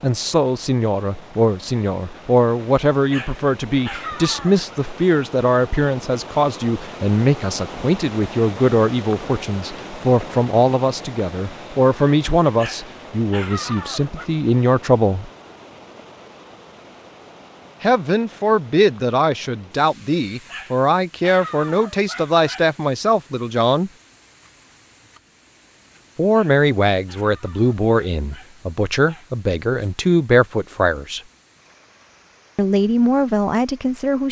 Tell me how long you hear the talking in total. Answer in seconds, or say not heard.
28 s.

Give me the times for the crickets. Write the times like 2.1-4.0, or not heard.
not heard.